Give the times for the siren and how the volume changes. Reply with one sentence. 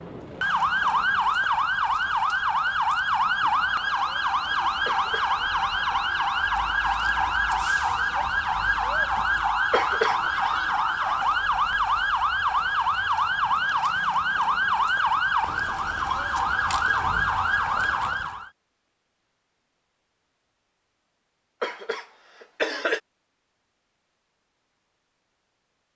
You can hear the siren from 0.0 to 18.5 s, at a steady volume.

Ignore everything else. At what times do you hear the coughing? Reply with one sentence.
The coughing can be heard from 4.8 to 5.3 s, from 9.7 to 10.2 s and from 21.6 to 23.0 s.